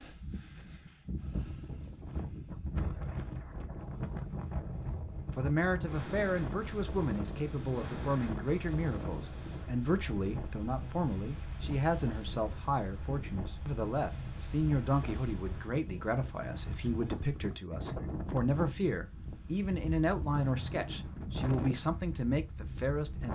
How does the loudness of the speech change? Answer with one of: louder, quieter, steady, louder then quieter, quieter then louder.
steady.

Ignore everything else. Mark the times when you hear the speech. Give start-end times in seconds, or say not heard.
5.3-23.3.